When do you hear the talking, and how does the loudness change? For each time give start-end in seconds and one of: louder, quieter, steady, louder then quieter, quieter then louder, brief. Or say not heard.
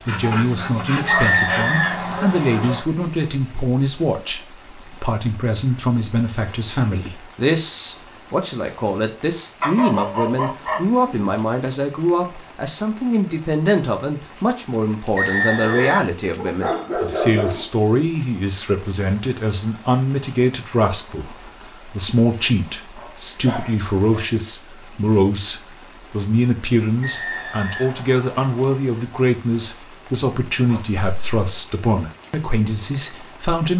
0.1-33.7 steady.